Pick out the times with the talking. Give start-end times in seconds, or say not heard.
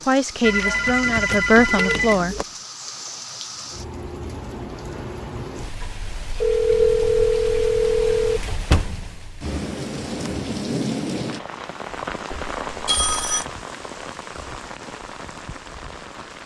0.0-2.4.